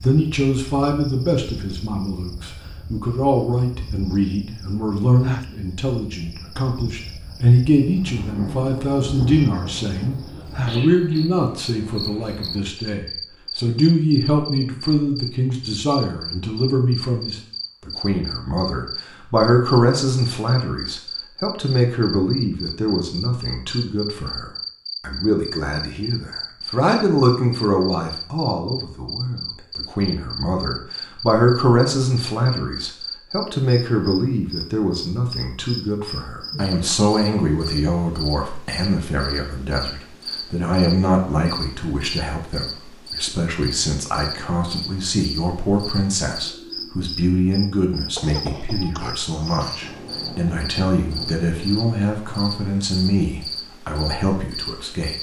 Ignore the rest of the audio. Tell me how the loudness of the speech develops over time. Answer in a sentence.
The volume of the speech stays about the same.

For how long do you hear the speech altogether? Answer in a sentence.
The speech can be heard for 55 seconds in total.